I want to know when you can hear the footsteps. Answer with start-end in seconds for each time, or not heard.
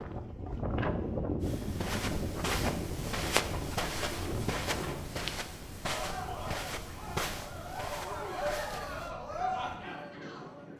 1.4-9.2.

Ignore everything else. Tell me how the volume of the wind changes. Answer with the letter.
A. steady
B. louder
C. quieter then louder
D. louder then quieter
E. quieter
E.